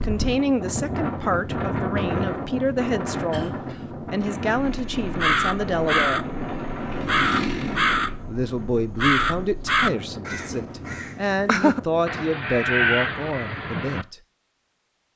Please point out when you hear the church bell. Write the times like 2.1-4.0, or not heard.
not heard.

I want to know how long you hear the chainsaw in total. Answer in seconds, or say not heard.
4 s.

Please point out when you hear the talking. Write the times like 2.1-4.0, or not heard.
0.0-6.3, 8.2-14.2.